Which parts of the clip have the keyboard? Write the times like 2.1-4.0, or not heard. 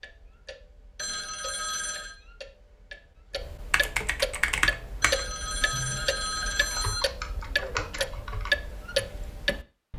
3.7-9.6.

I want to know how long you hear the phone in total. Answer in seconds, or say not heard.
3 s.